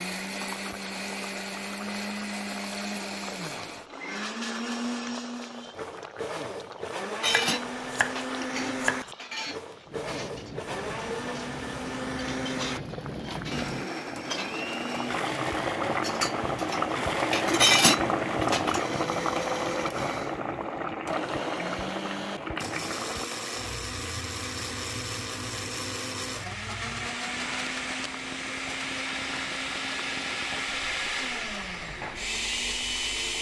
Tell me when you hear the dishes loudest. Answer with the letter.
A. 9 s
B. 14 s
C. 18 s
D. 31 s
C.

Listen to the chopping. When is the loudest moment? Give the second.
9 s.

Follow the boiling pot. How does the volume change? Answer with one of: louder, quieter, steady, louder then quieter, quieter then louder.
louder then quieter.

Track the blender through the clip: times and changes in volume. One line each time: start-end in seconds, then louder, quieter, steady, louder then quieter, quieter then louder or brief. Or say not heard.
0.0-33.3 steady.